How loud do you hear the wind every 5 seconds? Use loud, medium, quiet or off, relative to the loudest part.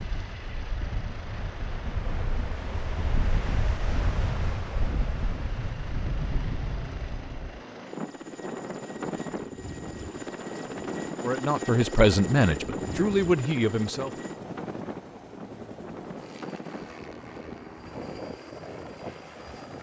loud, loud, loud, medium.